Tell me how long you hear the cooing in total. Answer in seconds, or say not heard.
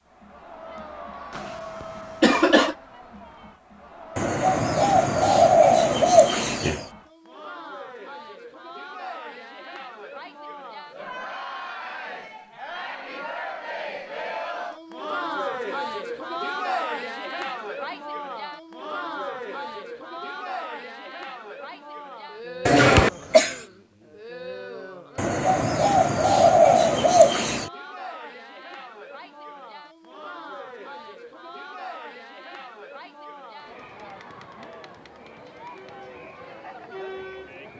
5 s.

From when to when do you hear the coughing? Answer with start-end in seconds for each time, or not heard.
1.4-2.8, 22.6-23.6.